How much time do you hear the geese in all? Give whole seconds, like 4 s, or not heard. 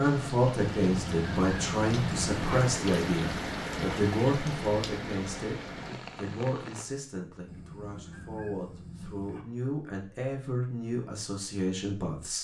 4 s.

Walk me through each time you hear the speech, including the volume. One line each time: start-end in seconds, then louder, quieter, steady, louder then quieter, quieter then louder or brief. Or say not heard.
0.0-5.5 steady
6.2-12.3 louder.